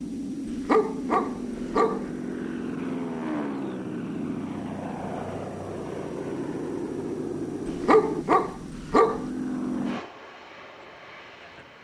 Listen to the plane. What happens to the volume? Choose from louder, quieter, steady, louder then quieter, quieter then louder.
steady.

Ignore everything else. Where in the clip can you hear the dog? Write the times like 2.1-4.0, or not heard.
0.5-2.0, 7.7-9.2.